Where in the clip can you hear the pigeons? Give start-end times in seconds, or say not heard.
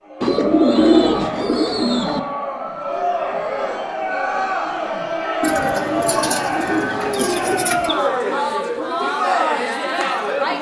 0.2-2.2, 5.4-8.0.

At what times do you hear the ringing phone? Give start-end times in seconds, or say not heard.
not heard.